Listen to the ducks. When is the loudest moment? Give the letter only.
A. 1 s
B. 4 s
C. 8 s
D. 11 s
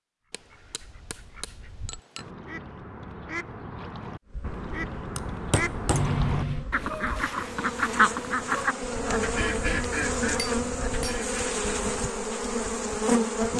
C.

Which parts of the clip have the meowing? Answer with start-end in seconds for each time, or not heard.
5.9-6.7.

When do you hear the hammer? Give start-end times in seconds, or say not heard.
0.3-2.3, 5.2-6.2, 9.2-11.2.